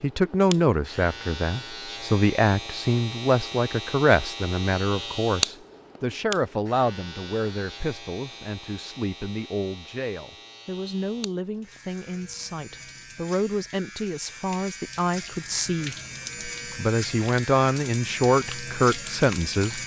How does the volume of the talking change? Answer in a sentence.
The loudness of the talking goes down, then up.